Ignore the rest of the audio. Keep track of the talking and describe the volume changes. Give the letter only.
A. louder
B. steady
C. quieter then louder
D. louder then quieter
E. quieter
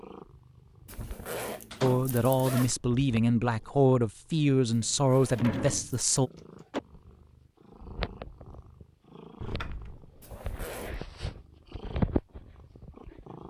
B.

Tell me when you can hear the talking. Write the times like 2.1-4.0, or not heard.
1.8-6.3.